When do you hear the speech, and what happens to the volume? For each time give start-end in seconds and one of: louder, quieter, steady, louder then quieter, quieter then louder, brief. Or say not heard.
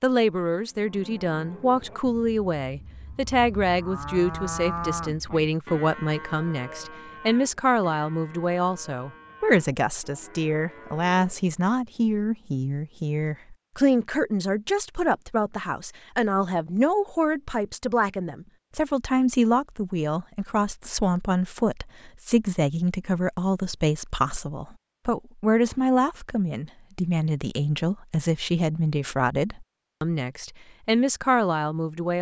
0.0-32.1 steady.